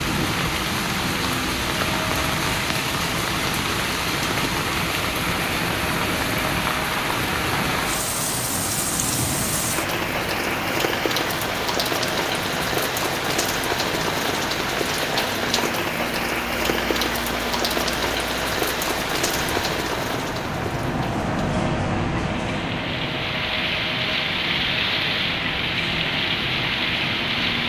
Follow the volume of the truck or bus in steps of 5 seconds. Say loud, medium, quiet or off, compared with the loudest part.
medium, medium, medium, medium, loud, medium.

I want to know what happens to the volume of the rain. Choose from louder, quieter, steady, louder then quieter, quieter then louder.
steady.